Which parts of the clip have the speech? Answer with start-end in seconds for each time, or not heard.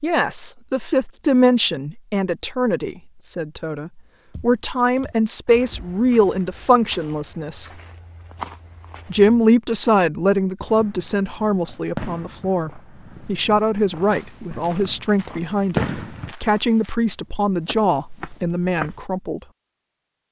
0.0-7.7, 9.1-19.4.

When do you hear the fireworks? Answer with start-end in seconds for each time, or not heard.
10.7-16.4.